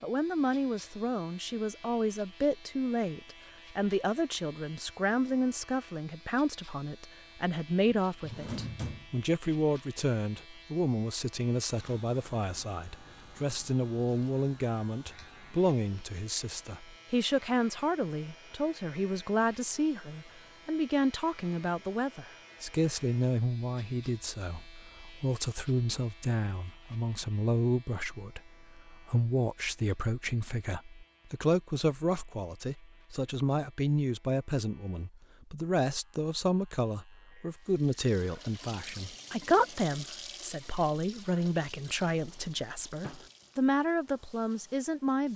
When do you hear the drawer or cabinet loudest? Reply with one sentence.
The volume of the drawer or cabinet peaks at 9 seconds.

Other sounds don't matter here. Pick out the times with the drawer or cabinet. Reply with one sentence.
The drawer or cabinet can be heard from 8.1 to 9.2 s and from 42.0 to 43.3 s.